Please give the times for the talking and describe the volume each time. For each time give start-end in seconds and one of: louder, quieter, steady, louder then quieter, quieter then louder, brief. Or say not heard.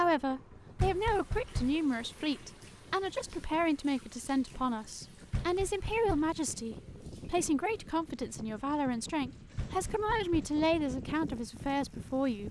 0.0-12.4 steady.